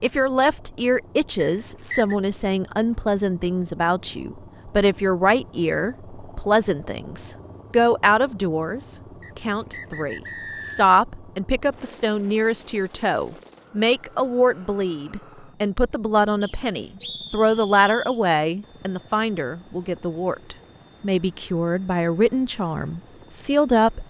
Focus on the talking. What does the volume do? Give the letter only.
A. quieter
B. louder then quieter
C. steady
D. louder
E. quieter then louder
C.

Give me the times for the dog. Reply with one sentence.
You can't hear the dog here.